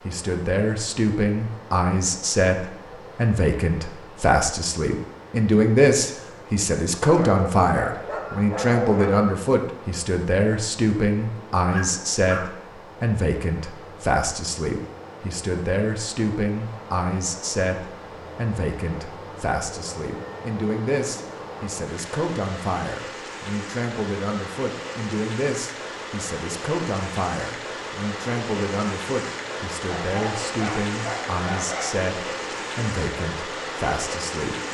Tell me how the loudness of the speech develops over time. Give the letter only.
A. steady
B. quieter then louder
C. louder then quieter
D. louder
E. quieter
E.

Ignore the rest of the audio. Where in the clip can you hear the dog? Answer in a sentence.
The dog can be heard from 7.0 to 9.3 s, from 11.7 to 12.5 s and from 30.0 to 32.0 s.